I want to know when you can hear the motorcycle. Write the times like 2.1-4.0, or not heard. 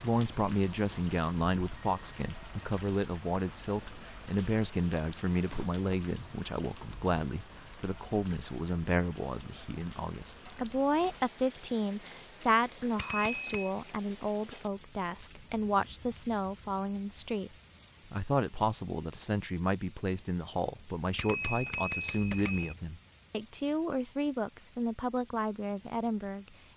not heard.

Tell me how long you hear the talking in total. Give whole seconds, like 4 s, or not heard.
26 s.